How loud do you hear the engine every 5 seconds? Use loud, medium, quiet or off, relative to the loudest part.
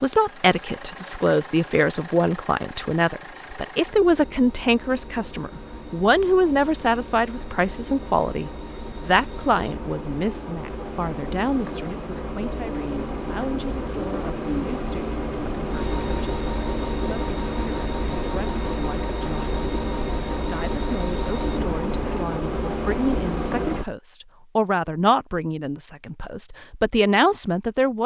quiet, medium, loud, loud, loud, off.